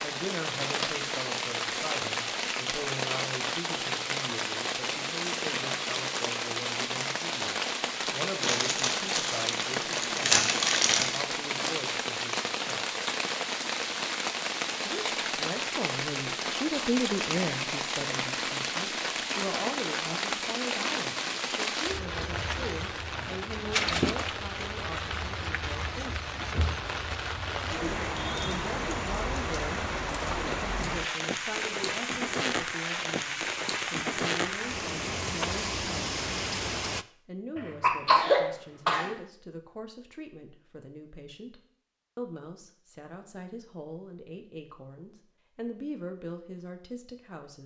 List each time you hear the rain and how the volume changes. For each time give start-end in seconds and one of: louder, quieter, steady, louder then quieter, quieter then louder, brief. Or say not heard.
0.0-37.0 steady.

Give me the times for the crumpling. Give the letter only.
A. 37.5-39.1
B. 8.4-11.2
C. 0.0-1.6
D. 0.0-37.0
B.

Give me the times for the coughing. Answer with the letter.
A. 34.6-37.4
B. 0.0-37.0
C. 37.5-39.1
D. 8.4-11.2
C.